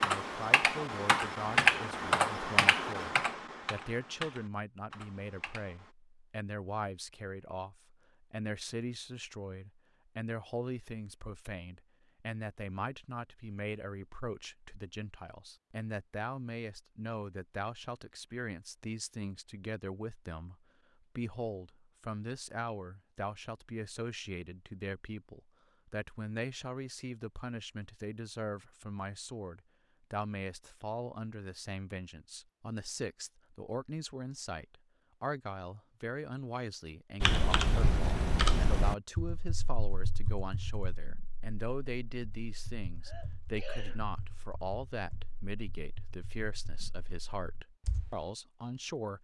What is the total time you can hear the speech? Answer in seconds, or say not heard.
49 s.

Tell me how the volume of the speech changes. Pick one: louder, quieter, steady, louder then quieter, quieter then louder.
steady.